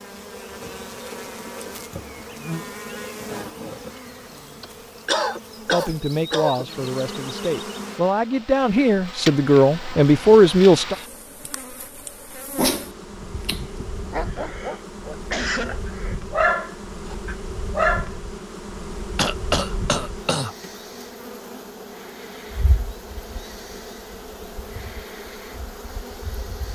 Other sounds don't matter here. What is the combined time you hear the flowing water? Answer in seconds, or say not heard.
not heard.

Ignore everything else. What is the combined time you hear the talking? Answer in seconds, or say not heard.
5 s.